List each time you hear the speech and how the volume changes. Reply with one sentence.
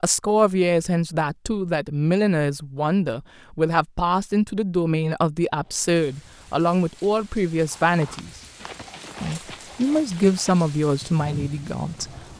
The speech can be heard from 0.0 to 8.4 s, at a steady volume; and briefly from 9.2 to 12.1 s.